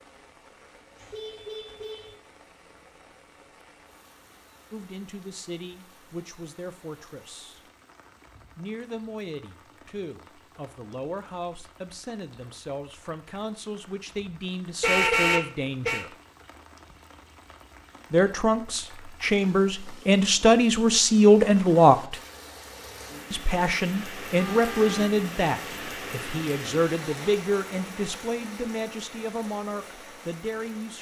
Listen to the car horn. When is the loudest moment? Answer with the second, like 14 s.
15 s.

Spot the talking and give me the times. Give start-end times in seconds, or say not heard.
4.7-7.6, 8.6-16.1, 18.1-22.1, 23.3-30.9.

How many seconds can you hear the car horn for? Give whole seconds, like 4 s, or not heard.
3 s.